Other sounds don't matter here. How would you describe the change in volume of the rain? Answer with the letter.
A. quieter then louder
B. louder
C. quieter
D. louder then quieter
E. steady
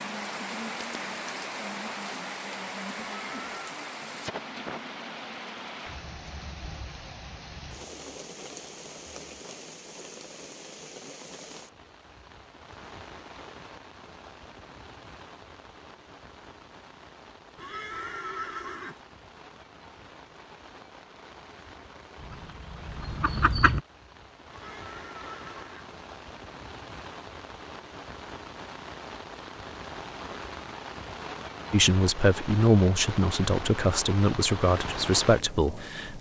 A.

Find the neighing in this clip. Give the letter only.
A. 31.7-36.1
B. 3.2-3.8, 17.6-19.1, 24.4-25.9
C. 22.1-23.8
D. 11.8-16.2
B.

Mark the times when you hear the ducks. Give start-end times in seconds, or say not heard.
22.1-23.8.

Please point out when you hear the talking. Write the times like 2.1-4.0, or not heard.
31.7-36.1.